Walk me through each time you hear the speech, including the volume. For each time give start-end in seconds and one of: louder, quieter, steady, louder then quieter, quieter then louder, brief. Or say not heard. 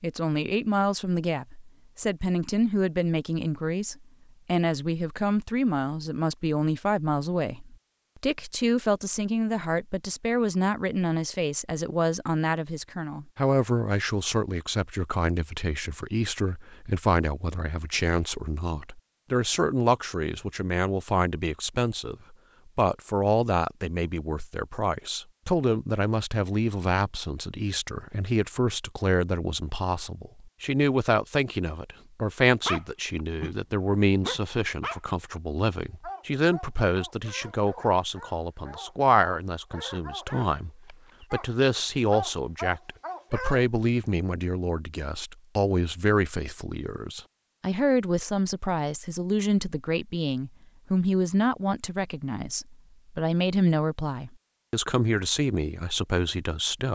0.0-56.9 steady.